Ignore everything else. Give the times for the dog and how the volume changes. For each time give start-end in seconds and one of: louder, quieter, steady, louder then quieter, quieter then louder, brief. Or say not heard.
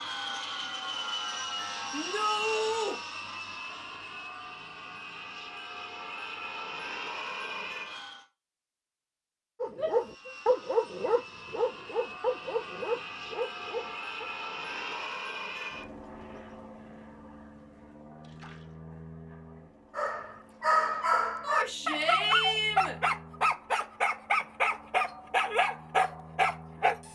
9.6-14.2 quieter
19.9-27.0 steady.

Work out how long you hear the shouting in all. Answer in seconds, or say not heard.
3 s.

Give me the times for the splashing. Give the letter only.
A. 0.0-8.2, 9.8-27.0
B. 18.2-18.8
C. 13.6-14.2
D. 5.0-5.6
B.